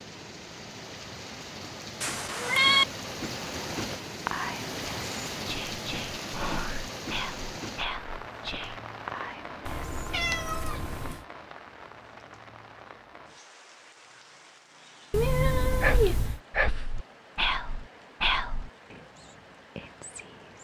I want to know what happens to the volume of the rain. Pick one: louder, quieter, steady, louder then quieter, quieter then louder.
quieter.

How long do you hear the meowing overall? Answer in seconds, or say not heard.
4 s.